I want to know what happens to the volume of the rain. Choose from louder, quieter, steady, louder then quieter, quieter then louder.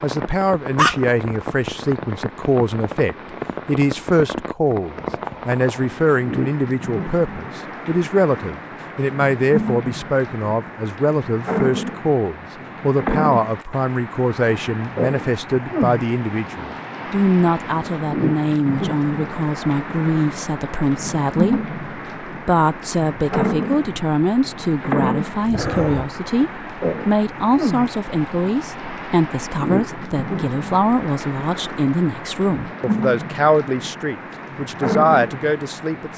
steady.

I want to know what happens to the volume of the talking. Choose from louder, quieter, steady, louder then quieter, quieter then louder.
steady.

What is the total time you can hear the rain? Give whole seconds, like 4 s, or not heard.
36 s.